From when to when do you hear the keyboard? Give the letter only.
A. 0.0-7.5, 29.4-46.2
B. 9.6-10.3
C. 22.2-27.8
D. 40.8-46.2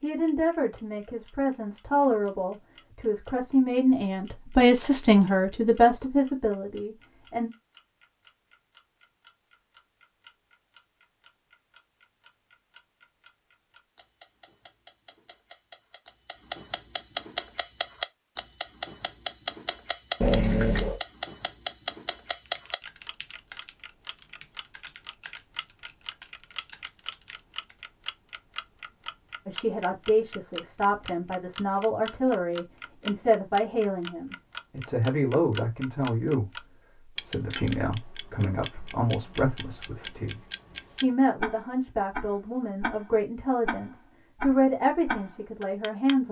C.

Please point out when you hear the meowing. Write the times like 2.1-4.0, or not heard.
20.2-21.0.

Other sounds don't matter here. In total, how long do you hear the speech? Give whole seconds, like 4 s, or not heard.
24 s.